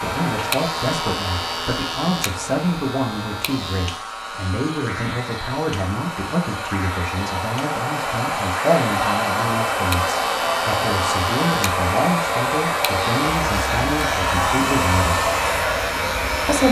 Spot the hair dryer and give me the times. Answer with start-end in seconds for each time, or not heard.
0.0-16.6.